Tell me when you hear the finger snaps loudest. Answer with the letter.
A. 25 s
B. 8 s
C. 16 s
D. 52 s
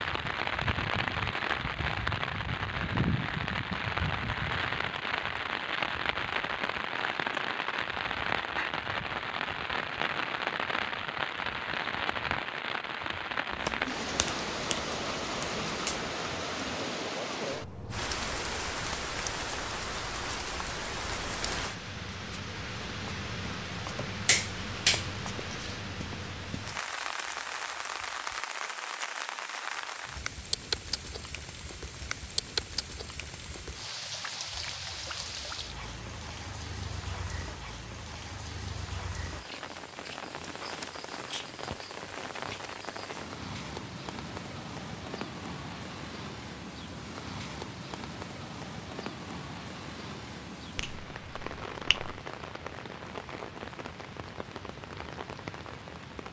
A.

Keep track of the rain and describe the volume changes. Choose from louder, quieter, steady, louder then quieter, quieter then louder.
quieter.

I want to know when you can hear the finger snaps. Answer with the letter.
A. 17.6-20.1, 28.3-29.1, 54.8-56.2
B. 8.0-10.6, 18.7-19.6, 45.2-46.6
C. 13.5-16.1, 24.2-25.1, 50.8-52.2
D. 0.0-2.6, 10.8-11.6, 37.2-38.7
C.